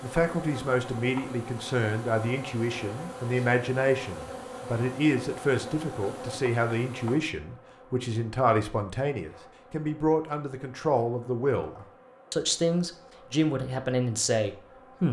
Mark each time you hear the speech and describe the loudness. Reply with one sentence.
The speech can be heard from 0.0 to 15.0 s, at a steady volume.